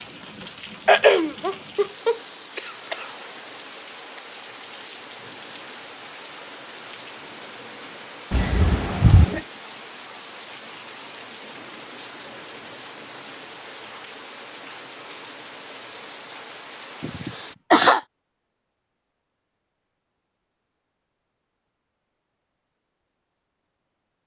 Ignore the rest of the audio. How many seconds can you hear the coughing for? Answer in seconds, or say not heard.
4 s.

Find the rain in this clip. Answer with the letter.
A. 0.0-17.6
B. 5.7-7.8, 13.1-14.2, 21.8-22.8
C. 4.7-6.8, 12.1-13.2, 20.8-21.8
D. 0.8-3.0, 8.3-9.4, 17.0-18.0
A.